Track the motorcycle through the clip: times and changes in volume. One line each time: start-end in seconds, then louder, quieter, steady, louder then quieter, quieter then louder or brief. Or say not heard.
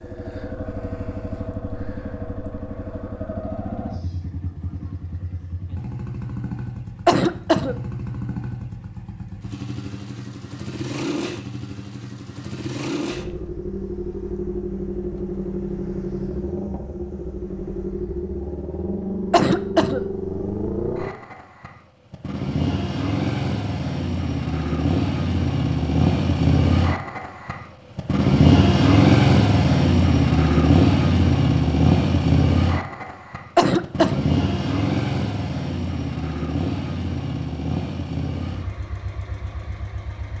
0.0-40.3 louder then quieter.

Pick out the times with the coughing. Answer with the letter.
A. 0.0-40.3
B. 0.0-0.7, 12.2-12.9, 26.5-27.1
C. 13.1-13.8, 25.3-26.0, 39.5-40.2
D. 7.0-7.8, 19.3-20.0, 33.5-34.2
D.